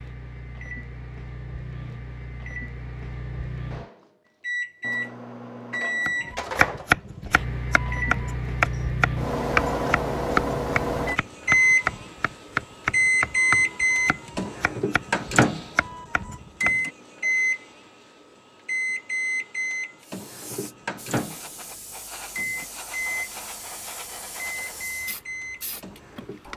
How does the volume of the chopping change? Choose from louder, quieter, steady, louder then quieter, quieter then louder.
quieter.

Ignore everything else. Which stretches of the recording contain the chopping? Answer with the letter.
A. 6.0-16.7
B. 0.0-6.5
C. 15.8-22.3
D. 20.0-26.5
A.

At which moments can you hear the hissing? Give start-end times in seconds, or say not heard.
20.0-26.5.